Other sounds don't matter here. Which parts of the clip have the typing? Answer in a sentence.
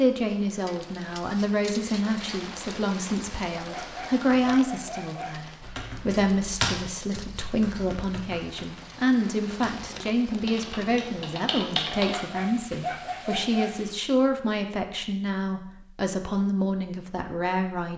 You can hear the typing from 5.6 to 12.2 s.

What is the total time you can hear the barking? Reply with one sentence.
You can hear the barking for 4 seconds altogether.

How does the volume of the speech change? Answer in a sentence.
The loudness of the speech stays about the same.